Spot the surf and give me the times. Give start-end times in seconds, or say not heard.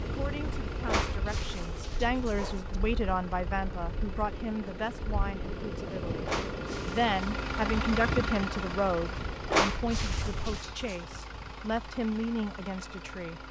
0.0-10.6.